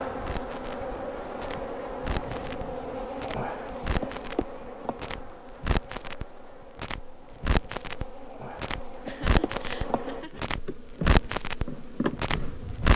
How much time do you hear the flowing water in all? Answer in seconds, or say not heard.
not heard.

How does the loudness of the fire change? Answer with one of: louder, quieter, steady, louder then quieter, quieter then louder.
louder.